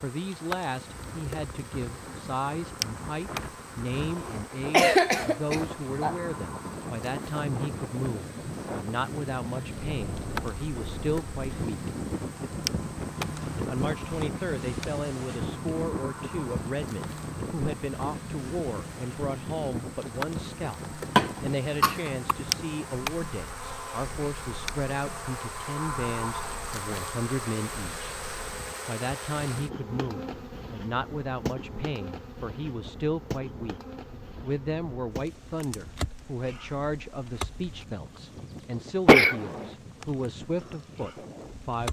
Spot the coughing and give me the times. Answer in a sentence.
You can hear the coughing from 4.7 to 6.2 s, from 21.1 to 22.3 s and from 39.0 to 39.7 s.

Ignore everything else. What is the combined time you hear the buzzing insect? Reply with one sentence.
You can hear the buzzing insect for 42 seconds altogether.